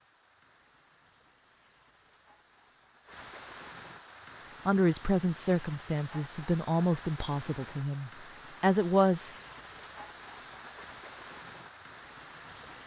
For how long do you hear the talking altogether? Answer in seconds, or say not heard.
5 s.